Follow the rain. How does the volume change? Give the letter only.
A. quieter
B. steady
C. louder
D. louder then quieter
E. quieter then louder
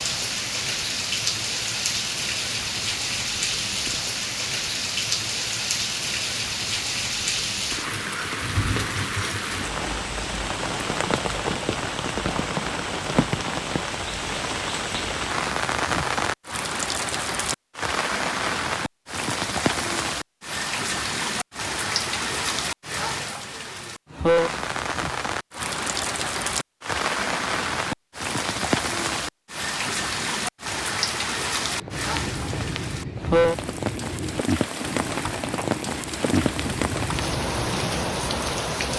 B.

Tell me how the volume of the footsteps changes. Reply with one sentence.
The volume of the footsteps stays about the same.